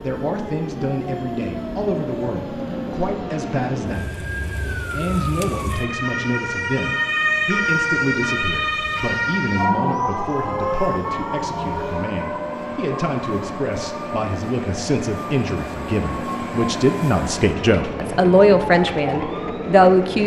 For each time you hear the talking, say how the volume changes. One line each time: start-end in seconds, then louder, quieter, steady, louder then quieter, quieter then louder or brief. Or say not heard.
0.0-20.2 louder.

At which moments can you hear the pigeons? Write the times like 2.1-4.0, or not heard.
not heard.